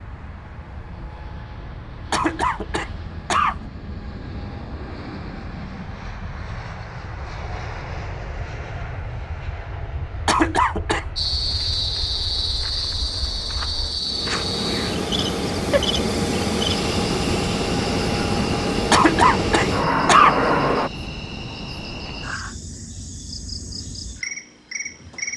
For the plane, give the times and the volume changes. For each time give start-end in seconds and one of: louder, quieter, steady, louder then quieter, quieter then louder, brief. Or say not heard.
0.0-20.9 louder.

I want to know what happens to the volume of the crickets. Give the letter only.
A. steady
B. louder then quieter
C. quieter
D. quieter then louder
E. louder
C.